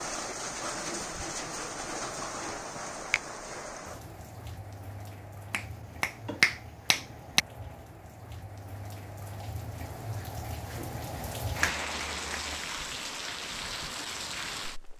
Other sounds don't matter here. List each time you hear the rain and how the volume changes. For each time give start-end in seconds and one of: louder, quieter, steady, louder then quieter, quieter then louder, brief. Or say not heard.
0.0-14.9 quieter then louder.